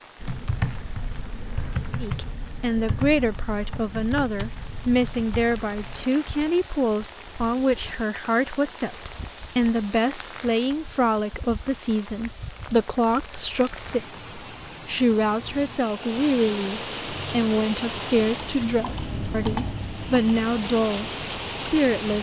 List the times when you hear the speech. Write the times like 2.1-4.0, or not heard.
2.0-22.1.